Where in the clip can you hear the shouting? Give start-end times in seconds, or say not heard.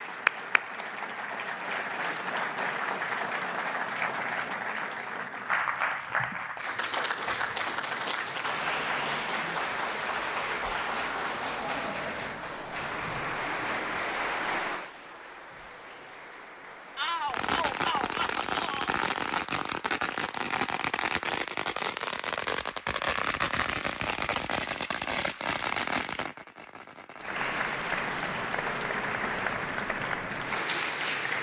16.9-18.9.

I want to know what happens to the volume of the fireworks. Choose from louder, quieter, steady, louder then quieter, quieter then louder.
steady.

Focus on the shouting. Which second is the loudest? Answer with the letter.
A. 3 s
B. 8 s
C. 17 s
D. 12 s
C.